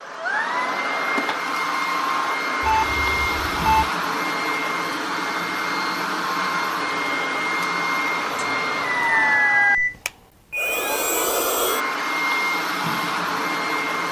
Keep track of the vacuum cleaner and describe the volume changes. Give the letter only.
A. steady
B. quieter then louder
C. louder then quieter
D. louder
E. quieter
A.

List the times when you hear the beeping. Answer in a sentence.
You can hear the beeping from 2.6 to 3.9 s and from 8.3 to 9.9 s.